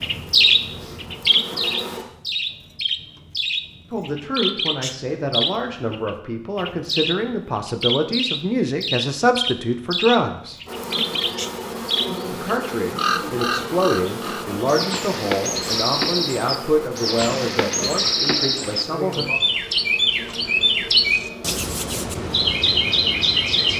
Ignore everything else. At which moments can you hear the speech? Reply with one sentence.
The speech can be heard from 3.9 to 10.6 s and from 12.3 to 19.2 s.